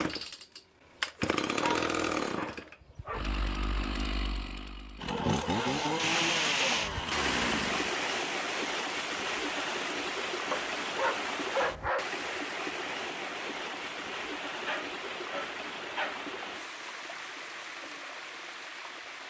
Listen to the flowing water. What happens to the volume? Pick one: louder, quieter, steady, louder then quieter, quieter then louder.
quieter.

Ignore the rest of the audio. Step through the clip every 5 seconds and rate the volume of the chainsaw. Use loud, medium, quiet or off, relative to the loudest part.
loud, loud, off, off.